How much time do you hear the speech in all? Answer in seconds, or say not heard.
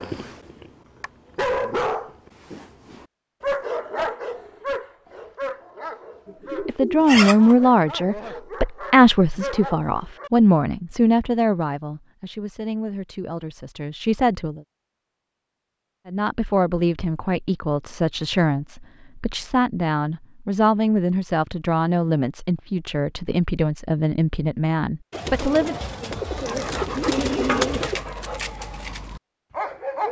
18 s.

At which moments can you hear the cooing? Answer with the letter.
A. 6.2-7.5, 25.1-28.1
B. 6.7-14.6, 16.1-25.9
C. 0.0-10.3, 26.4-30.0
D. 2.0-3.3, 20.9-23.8
A.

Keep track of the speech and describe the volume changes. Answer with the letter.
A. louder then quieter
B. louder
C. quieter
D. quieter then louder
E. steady
C.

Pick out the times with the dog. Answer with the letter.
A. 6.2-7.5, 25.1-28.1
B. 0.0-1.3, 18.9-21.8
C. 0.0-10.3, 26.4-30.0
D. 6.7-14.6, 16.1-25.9
C.